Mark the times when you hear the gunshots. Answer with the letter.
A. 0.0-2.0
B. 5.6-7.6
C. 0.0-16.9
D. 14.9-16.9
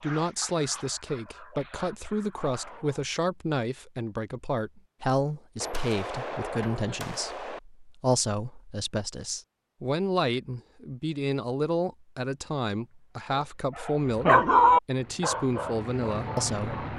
B.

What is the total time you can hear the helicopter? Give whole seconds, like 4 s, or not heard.
2 s.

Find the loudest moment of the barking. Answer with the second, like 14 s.
15 s.